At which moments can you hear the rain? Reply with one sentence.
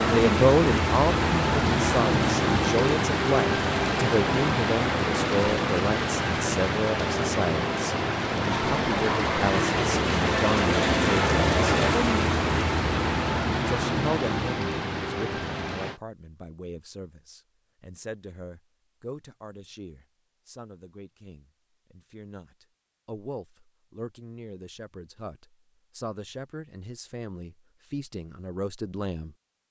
You can hear the rain from 0.0 to 16.0 s.